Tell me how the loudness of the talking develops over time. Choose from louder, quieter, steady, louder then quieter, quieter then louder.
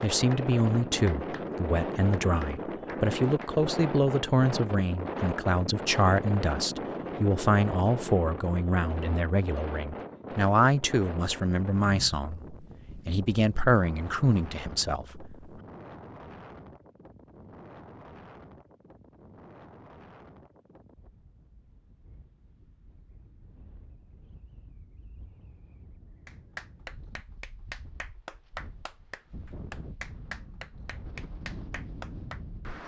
steady.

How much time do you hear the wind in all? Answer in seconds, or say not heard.
33 s.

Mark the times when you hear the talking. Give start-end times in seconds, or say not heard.
0.0-15.5.